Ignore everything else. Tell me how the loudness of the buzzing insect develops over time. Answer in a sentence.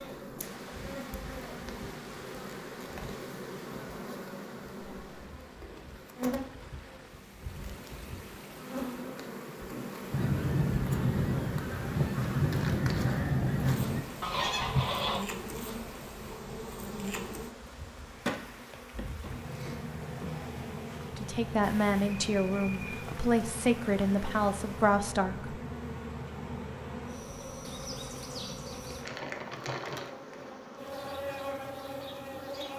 The volume of the buzzing insect stays about the same.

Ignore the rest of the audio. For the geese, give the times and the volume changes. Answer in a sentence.
The geese can be heard from 10.1 to 15.2 s, at a steady volume.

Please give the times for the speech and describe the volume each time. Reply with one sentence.
The speech can be heard from 21.1 to 25.6 s, at a steady volume.